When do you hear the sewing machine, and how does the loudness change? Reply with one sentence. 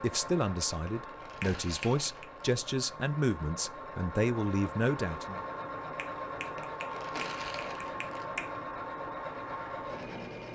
You can hear the sewing machine from 0.0 to 10.4 s, getting louder.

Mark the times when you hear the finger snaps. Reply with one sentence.
You can hear the finger snaps from 1.4 to 2.2 s and from 6.0 to 8.5 s.